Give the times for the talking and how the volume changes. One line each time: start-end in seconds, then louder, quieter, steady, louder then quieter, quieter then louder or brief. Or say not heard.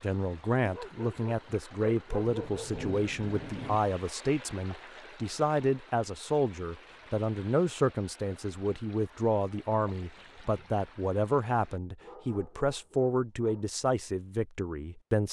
0.0-15.2 steady.